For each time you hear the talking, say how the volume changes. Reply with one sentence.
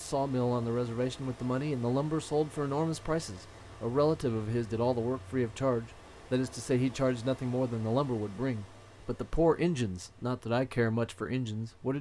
You can hear the talking from 0.0 to 11.9 s, at a steady volume.